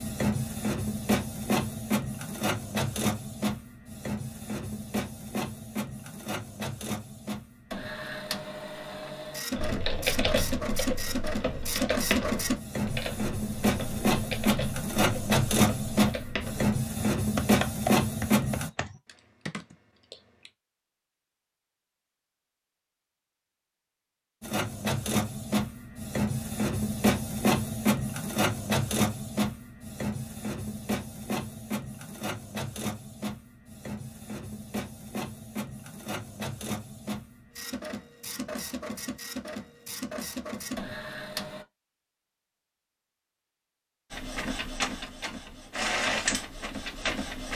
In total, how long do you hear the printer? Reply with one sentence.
You can hear the printer for 39 seconds altogether.